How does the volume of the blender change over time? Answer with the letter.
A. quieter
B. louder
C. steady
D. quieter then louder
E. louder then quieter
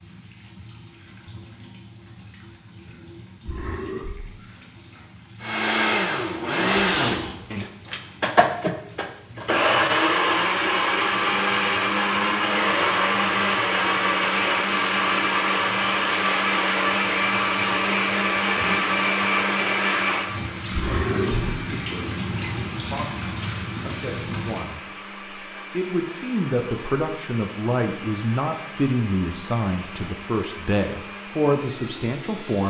A.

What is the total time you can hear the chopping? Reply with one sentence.
The chopping can't be heard in this clip.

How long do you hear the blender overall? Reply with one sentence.
You can hear the blender for 27 seconds altogether.